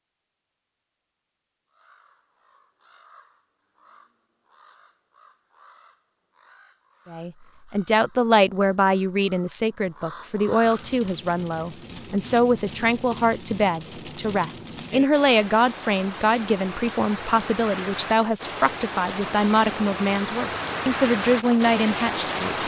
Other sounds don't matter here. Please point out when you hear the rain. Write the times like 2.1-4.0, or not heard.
10.6-22.6.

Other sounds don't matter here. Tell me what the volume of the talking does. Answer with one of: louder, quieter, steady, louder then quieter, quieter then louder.
steady.